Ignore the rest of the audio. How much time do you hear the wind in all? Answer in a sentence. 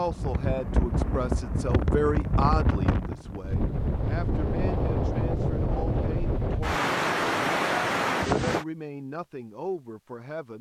The wind can be heard for 9 seconds in total.